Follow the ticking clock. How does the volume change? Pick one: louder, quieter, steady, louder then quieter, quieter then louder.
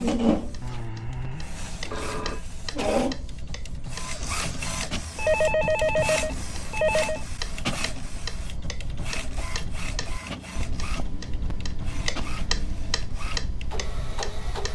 louder.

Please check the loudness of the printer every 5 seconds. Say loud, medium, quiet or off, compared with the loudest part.
loud, medium, medium.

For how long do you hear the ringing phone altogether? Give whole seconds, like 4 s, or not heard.
7 s.